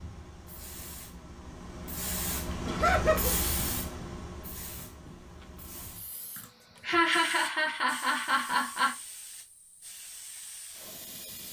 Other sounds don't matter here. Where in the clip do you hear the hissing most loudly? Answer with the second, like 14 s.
3 s.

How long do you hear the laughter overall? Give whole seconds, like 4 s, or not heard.
3 s.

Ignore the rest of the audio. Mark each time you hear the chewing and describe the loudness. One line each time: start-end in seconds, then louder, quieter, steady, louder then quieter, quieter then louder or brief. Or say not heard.
not heard.